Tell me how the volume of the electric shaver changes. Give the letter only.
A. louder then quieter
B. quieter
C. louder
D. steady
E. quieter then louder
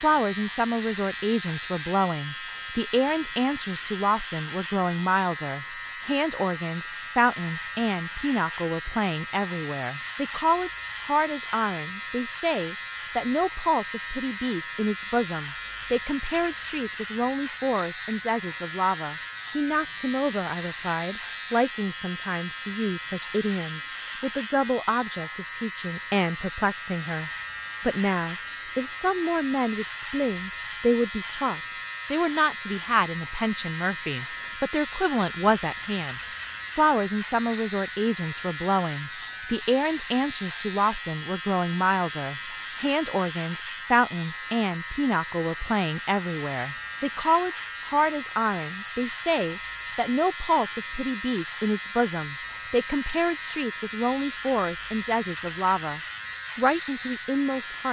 D.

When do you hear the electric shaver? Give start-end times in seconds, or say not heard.
0.0-57.8.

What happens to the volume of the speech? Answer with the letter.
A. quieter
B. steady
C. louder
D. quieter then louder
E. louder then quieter
B.